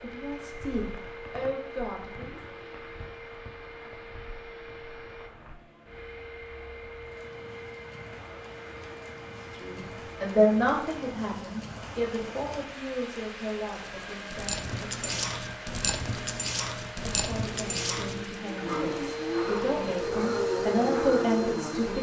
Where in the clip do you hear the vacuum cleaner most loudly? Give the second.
21 s.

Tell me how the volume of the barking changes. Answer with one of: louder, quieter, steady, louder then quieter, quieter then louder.
quieter.